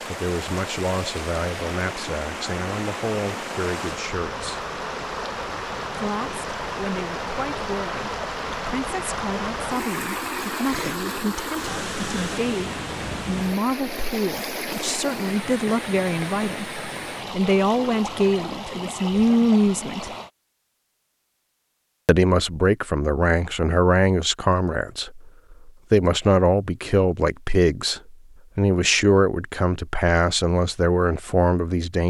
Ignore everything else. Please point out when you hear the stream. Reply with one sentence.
You can hear the stream from 0.0 to 20.3 s.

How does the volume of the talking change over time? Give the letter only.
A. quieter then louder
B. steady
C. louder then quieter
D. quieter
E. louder
E.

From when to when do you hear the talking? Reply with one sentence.
You can hear the talking from 0.1 to 4.6 s, from 5.9 to 20.1 s and from 22.1 to 32.0 s.